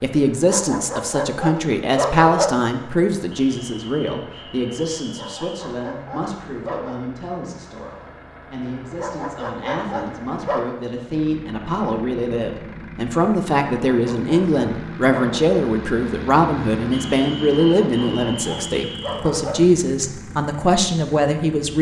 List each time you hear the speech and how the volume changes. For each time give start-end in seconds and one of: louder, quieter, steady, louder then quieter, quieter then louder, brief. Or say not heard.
0.0-21.7 quieter then louder.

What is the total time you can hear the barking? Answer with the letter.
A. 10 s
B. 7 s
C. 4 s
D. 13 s
A.